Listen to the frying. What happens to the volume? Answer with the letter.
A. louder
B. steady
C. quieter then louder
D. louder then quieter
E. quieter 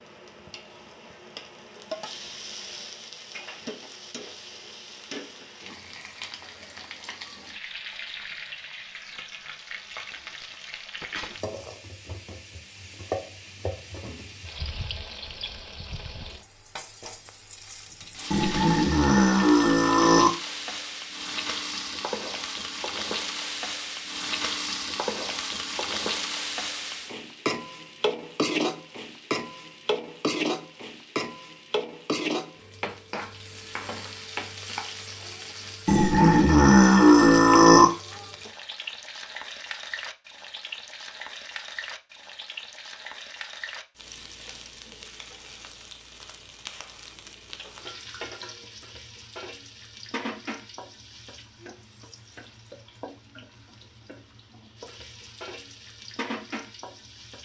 D.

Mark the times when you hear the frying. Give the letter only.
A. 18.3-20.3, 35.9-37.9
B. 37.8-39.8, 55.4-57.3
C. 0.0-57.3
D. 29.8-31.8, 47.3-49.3
C.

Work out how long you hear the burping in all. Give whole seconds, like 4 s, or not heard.
4 s.